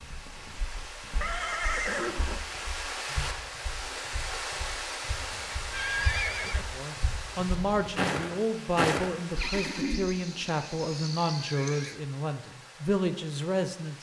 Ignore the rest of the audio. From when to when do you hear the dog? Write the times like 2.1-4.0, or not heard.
not heard.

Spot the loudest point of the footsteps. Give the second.
9 s.